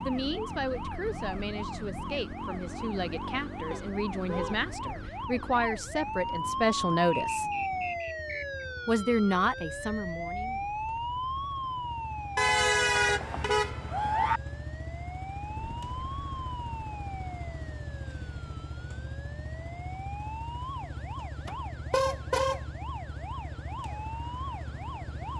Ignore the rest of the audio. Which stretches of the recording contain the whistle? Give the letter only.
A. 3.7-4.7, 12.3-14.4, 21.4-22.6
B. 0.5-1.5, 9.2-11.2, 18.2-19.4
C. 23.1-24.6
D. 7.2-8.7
D.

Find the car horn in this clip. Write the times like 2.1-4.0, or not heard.
3.7-4.7, 12.3-14.4, 21.4-22.6.